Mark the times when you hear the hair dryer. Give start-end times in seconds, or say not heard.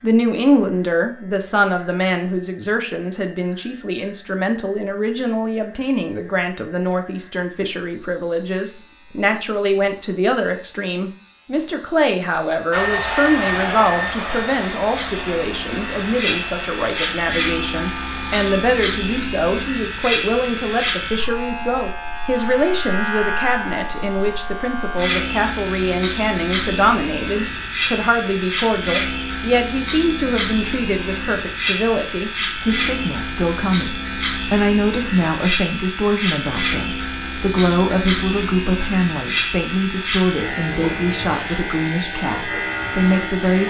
12.7-18.8.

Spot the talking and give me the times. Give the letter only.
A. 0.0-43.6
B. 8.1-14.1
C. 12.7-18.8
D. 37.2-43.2
A.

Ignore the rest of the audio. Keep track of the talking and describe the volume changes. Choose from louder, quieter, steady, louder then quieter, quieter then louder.
steady.